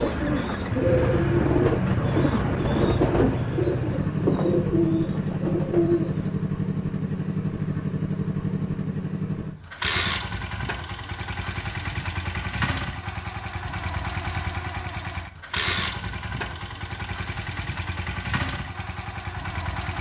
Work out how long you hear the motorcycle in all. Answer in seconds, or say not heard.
20 s.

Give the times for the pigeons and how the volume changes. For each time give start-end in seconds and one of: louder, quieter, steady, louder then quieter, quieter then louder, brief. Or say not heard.
0.0-6.3 steady.